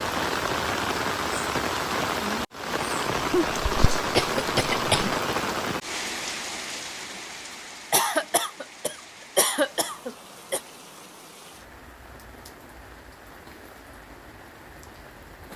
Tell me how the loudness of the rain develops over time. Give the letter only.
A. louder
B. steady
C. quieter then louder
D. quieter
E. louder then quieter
D.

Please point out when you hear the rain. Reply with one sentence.
You can hear the rain from 0.0 to 15.5 s.